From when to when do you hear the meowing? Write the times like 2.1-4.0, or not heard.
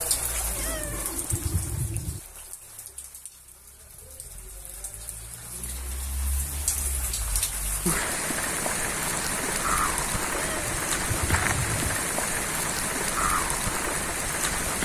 0.6-2.2, 10.3-12.0.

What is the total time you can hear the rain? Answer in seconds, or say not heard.
15 s.